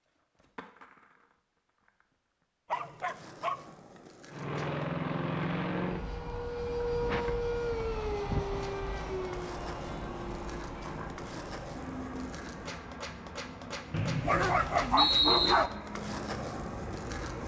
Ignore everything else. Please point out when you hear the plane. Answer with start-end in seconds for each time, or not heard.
4.3-17.4.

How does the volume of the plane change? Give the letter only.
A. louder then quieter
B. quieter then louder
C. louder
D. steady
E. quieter
E.